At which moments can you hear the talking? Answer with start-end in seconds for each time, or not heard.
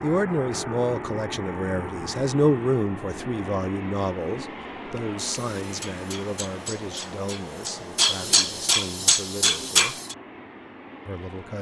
0.0-10.0, 11.1-11.5.